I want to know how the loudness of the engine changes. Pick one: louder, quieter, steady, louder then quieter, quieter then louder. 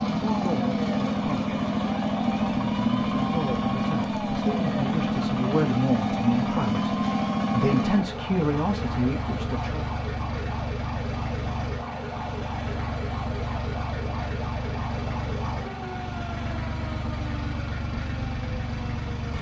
quieter.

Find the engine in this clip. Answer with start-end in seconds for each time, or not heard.
0.0-19.3.